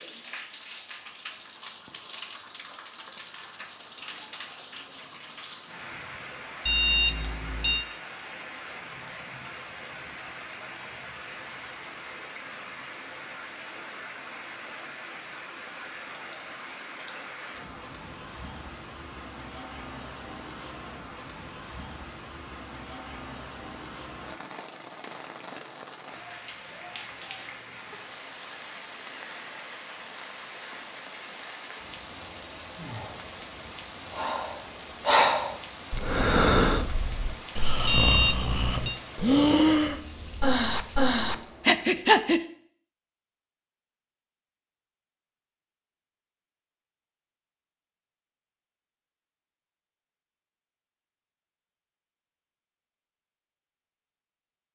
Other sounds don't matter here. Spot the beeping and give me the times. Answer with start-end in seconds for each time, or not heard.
6.7-7.8, 37.9-39.0.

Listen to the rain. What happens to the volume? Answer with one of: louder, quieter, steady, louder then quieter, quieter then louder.
steady.